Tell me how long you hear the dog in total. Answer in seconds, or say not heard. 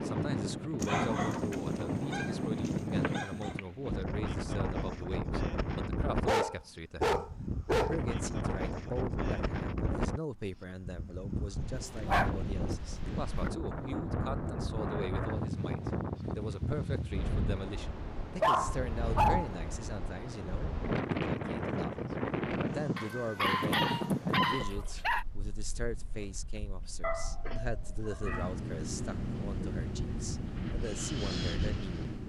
11 s.